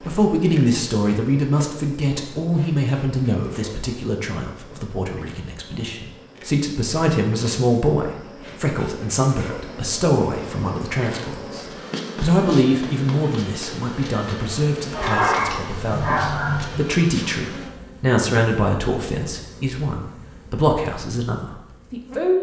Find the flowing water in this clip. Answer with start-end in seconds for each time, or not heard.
not heard.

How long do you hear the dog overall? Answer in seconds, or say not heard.
2 s.